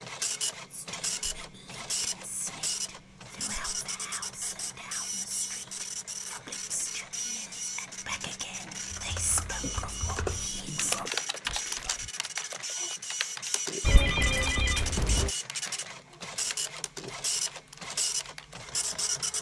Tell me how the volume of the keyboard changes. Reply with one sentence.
The volume of the keyboard goes down.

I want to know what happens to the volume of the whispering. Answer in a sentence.
The loudness of the whispering goes up.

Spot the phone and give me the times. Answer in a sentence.
The phone can be heard from 13.8 to 15.3 s.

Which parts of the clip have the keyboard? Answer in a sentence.
The keyboard can be heard from 8.8 to 18.8 s.